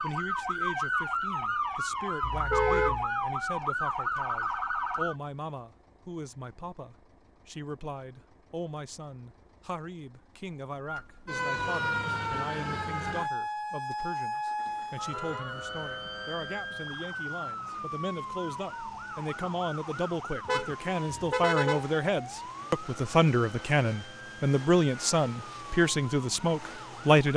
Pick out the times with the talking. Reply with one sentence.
You can hear the talking from 0.0 to 27.3 s.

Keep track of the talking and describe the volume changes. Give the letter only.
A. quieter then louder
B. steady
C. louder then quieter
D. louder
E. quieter
D.